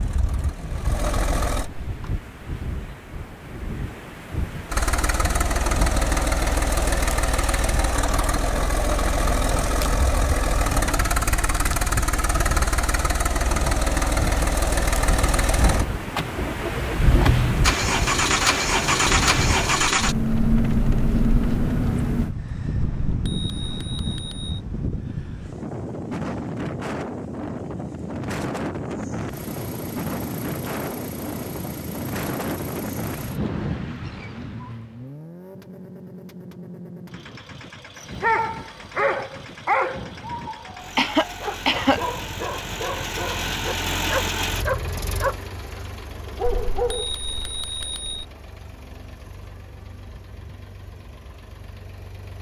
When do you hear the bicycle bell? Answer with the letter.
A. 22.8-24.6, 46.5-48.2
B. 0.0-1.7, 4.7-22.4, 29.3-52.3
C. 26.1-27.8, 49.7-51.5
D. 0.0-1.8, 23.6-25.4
A.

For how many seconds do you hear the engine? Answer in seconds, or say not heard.
42 s.